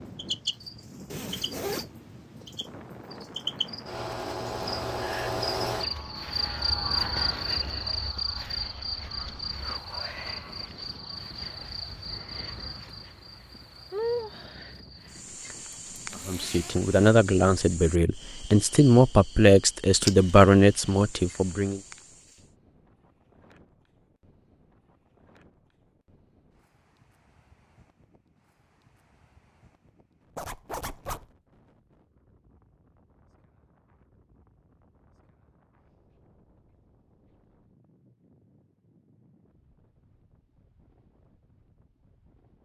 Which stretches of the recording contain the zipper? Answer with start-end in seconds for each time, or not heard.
1.1-1.9, 15.9-16.9, 30.4-31.2.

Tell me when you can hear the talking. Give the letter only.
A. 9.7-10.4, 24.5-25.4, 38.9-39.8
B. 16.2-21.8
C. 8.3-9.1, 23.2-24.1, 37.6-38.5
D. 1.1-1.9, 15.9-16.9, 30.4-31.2
B.